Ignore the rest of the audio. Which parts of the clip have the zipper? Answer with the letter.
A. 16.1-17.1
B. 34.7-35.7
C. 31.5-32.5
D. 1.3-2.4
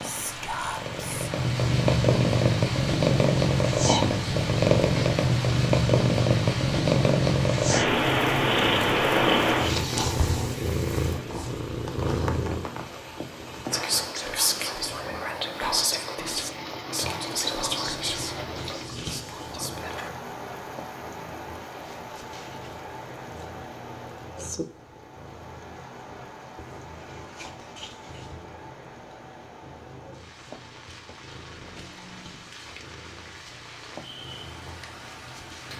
C.